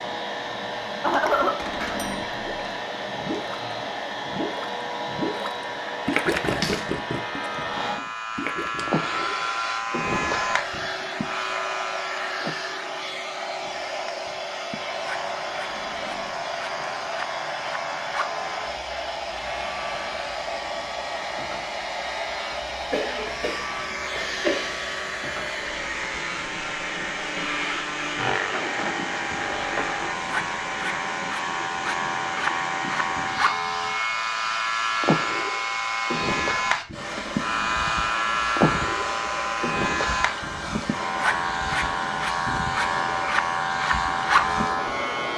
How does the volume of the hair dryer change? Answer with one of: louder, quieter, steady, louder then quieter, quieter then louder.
steady.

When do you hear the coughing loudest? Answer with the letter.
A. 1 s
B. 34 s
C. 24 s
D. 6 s
A.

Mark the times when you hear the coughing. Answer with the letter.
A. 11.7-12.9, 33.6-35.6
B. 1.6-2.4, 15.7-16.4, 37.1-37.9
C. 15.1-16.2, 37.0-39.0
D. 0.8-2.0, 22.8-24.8
D.